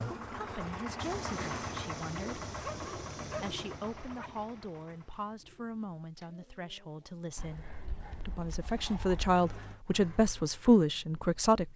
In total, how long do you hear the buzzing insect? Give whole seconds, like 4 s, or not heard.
2 s.